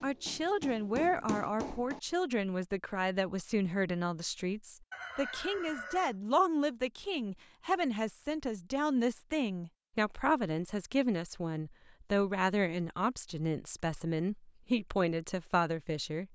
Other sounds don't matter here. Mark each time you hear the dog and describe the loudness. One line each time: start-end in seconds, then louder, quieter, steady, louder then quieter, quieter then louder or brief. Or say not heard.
not heard.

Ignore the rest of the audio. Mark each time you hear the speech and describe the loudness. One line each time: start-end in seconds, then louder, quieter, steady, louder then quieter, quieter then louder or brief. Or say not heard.
0.0-16.3 steady.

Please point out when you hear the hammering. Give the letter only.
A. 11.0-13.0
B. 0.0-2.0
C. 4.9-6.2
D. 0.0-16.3
B.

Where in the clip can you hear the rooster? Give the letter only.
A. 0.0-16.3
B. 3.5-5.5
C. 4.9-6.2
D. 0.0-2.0
C.